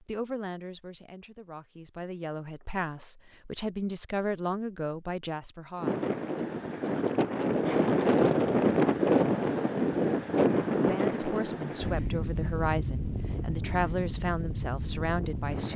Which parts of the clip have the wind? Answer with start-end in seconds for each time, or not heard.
5.8-15.7.